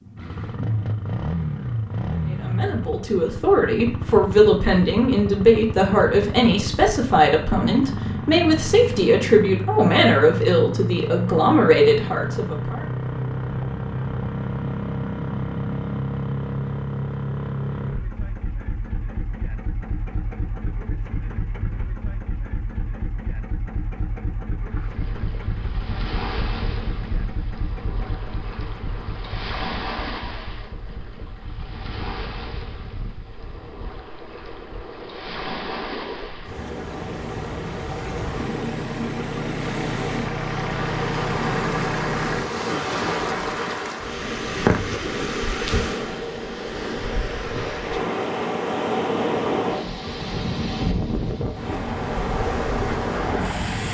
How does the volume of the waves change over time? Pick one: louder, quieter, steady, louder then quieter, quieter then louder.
louder.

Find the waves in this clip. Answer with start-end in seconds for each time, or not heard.
24.6-53.8.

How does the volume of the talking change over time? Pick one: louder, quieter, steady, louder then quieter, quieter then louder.
steady.